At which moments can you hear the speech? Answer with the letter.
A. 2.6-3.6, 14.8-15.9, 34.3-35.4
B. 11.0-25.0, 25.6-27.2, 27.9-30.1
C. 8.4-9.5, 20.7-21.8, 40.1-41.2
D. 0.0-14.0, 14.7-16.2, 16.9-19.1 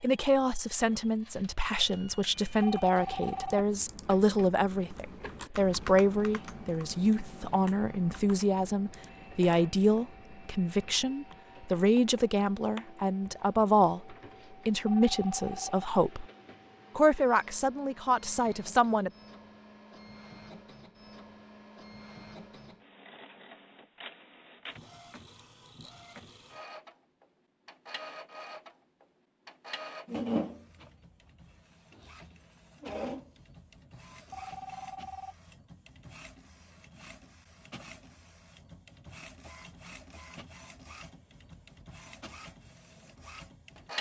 D.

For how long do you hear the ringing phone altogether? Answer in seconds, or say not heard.
3 s.